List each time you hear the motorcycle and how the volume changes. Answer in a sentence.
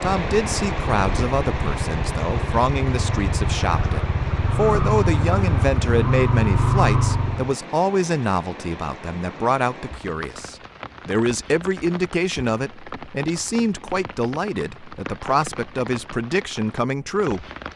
The motorcycle can be heard from 0.1 to 7.5 s, getting louder.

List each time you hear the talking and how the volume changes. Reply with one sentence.
You can hear the talking from 0.0 to 17.4 s, at a steady volume.